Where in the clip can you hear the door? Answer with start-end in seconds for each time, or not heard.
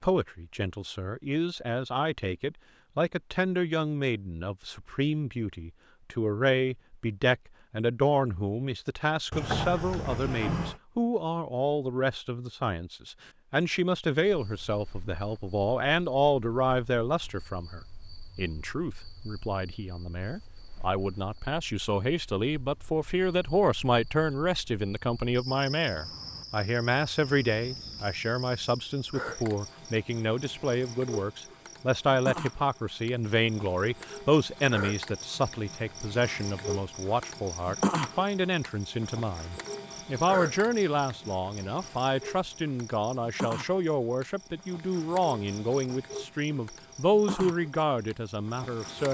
9.3-10.8.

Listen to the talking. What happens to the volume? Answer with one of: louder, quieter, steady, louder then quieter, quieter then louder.
steady.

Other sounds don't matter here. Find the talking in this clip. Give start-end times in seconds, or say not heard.
0.0-49.0.